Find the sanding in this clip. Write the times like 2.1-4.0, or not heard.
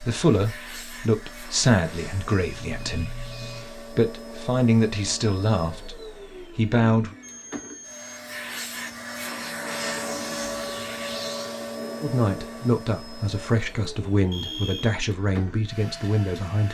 not heard.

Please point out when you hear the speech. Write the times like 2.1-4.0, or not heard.
0.0-7.2, 12.0-16.7.